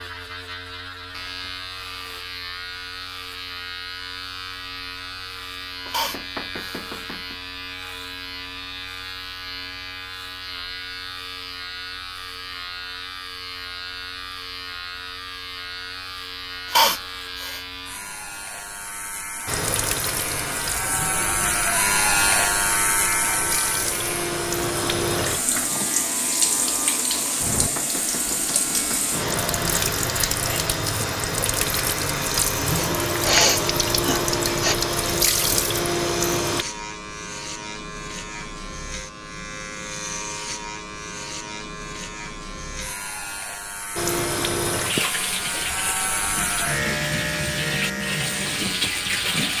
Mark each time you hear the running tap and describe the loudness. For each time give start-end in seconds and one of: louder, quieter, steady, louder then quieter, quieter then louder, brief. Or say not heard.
19.4-36.6 louder
44.0-49.5 quieter then louder.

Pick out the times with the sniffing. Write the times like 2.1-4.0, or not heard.
5.9-6.8, 16.7-17.6, 33.2-34.8.